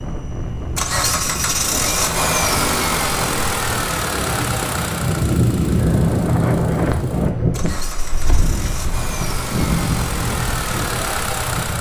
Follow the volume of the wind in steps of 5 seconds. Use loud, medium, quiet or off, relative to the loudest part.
medium, loud, medium.